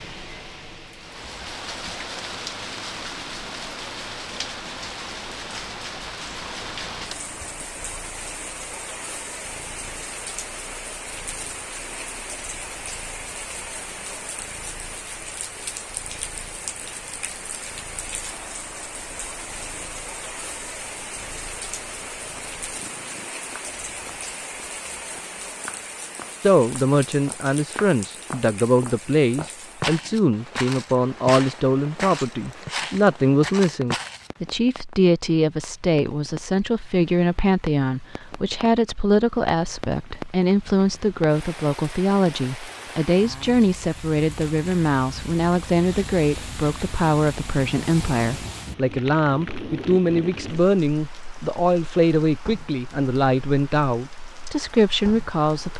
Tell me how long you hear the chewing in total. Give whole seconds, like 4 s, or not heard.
not heard.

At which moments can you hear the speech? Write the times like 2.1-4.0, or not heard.
26.4-55.7.